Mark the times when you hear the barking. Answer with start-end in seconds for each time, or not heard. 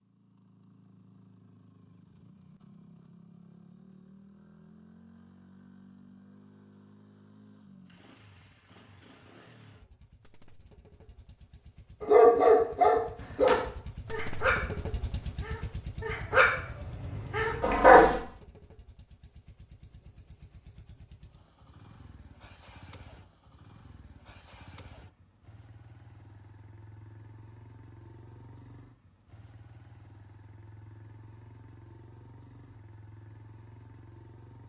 12.0-18.1.